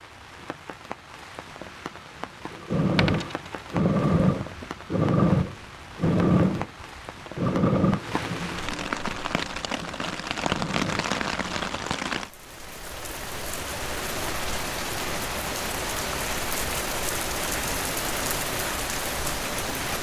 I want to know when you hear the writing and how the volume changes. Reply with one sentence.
You can't hear the writing here.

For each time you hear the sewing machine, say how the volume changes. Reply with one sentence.
The sewing machine can be heard from 2.5 to 11.2 s, getting quieter.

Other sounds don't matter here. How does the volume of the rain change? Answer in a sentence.
The volume of the rain goes up.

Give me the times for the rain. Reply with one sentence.
You can hear the rain from 0.0 to 19.9 s.